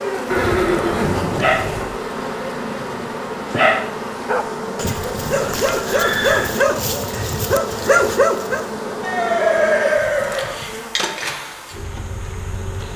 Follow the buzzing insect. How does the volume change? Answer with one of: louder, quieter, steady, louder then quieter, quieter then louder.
steady.